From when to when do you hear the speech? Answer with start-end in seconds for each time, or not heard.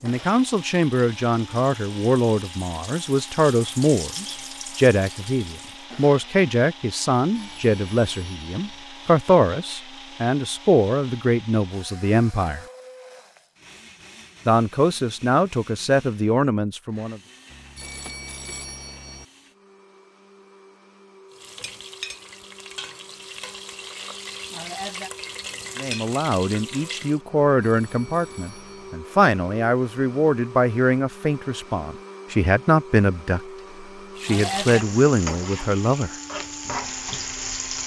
0.0-12.7, 14.4-17.2, 25.8-36.1.